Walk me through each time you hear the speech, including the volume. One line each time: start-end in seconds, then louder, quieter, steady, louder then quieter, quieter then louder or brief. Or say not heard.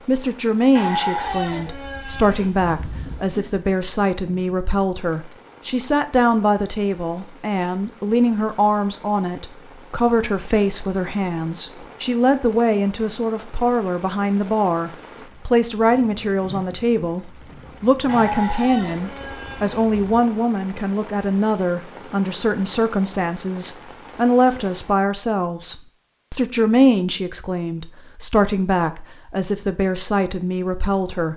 0.1-31.3 steady.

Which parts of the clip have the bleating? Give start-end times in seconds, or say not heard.
0.8-3.5, 18.1-20.2.